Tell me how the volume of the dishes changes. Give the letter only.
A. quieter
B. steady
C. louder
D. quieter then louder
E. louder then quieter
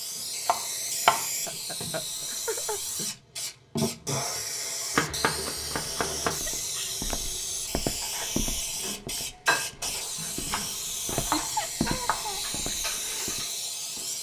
E.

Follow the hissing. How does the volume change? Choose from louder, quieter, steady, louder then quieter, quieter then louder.
steady.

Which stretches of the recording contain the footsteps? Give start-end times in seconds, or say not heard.
5.7-13.4.